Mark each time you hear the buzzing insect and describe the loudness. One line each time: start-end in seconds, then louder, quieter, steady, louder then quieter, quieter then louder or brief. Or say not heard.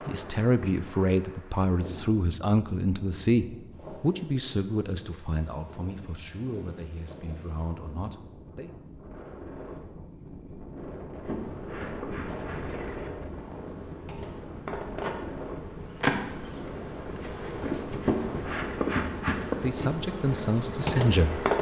11.2-21.5 louder.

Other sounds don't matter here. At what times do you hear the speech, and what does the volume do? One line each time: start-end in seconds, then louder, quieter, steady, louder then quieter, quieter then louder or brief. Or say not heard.
0.1-8.8 quieter
19.6-21.5 brief.